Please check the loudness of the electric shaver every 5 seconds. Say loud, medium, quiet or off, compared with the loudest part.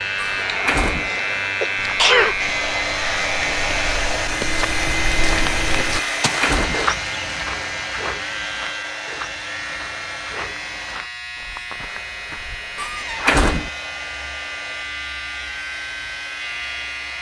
loud, medium, medium, medium.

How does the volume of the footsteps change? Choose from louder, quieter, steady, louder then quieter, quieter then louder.
louder then quieter.